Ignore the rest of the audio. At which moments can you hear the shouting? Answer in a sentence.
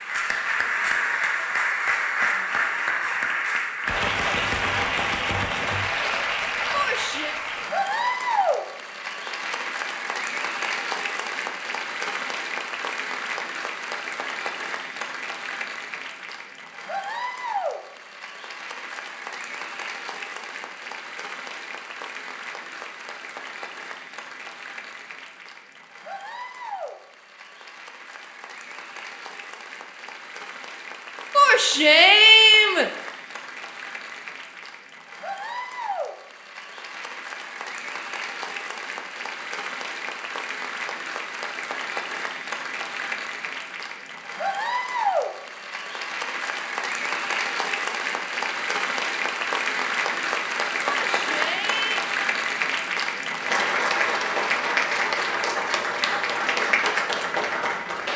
You can hear the shouting from 6.7 to 7.3 s, from 31.4 to 32.9 s and from 51.0 to 52.0 s.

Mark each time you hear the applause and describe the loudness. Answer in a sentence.
You can hear the applause from 0.0 to 58.1 s, getting quieter then louder.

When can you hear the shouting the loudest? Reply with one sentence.
The volume of the shouting peaks at 32 seconds.